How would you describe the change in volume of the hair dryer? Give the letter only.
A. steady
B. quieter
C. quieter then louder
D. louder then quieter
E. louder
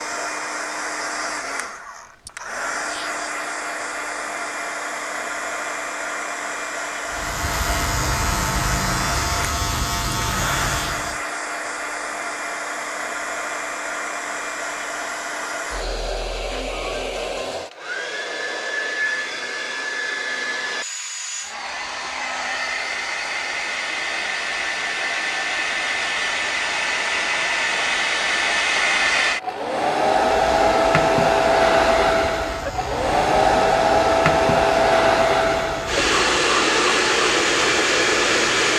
E.